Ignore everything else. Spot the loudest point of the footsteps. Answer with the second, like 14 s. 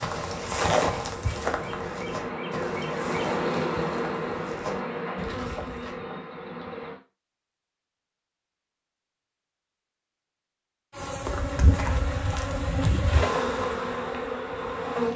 1 s.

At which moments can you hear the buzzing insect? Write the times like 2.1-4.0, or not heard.
0.0-7.0, 10.9-15.1.